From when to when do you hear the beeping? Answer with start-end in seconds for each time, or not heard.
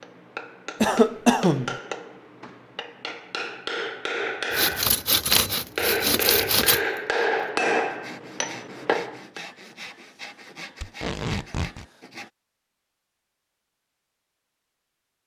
not heard.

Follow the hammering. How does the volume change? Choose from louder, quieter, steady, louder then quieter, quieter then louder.
louder.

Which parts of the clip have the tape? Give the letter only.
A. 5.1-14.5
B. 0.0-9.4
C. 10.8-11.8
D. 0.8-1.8
C.